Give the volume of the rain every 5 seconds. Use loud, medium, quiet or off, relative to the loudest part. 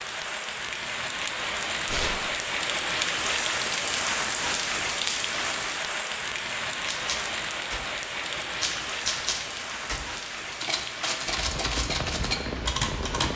loud, loud, medium.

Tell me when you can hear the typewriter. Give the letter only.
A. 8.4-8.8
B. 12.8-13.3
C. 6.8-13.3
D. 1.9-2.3
C.